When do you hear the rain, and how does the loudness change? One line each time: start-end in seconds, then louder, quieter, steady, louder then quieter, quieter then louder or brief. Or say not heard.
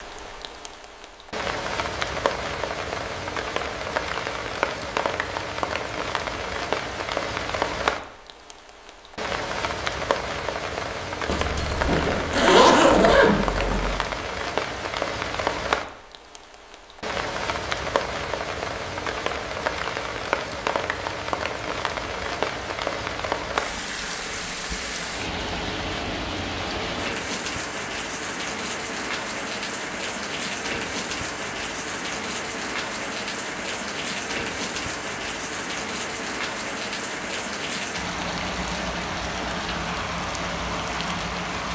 0.0-41.7 steady.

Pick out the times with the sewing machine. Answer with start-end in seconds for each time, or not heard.
not heard.